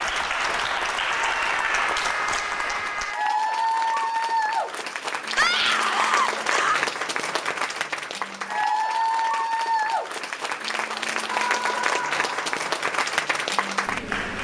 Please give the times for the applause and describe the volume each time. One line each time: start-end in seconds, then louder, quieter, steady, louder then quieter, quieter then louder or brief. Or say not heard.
0.0-14.4 steady.